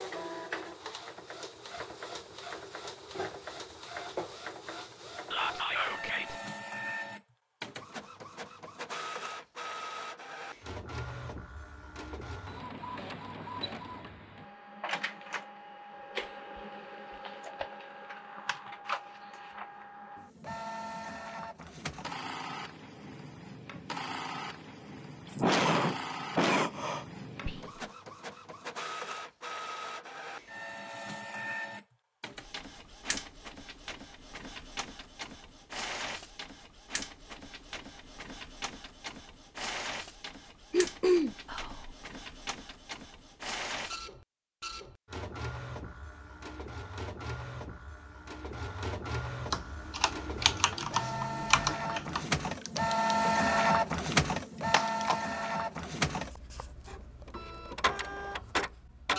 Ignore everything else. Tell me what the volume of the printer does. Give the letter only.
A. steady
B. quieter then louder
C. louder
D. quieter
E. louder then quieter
C.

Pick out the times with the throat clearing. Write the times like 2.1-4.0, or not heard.
25.2-27.1, 40.7-41.4.